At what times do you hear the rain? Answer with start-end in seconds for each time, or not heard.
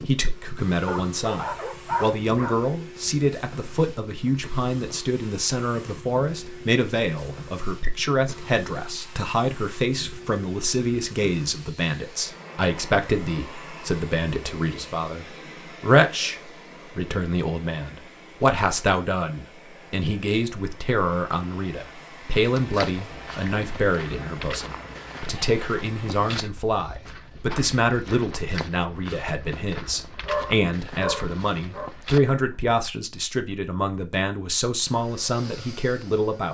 not heard.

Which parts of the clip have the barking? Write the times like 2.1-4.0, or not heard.
0.8-2.5, 30.2-31.9.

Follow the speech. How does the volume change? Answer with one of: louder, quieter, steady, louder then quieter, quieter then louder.
steady.